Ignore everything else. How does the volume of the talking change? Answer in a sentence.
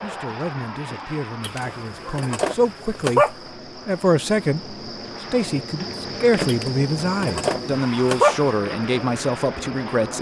The volume of the talking goes up.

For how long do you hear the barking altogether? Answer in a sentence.
You can hear the barking for 4 seconds altogether.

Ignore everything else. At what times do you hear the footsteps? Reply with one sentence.
You can't hear the footsteps here.